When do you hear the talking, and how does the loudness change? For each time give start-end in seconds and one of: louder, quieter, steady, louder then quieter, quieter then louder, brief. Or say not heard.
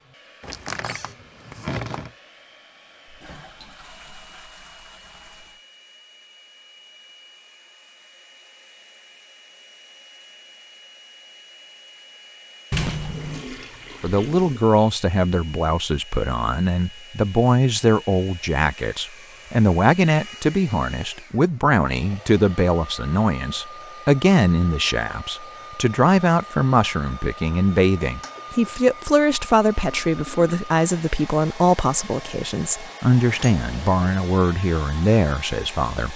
14.0-36.1 steady.